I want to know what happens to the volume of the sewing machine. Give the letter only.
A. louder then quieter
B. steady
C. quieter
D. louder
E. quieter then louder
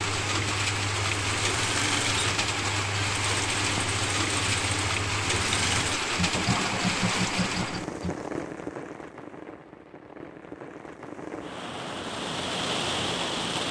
B.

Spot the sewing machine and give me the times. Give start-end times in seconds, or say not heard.
0.0-8.2.